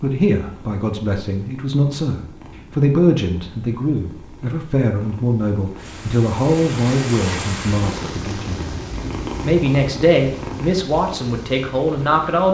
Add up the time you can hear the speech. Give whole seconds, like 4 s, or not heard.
12 s.